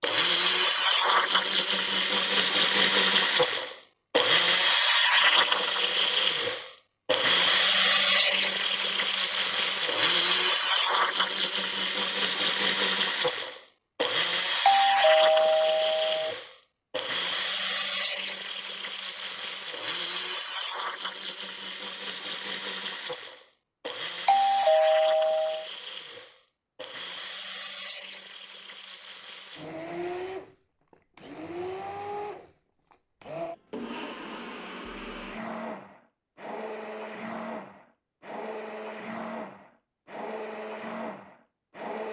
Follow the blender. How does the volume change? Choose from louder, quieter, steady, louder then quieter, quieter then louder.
quieter.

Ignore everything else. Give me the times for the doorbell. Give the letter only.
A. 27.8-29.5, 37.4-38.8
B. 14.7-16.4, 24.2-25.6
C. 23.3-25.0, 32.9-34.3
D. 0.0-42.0
B.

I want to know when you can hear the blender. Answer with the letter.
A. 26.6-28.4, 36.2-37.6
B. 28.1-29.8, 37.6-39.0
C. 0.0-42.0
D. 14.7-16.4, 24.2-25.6
C.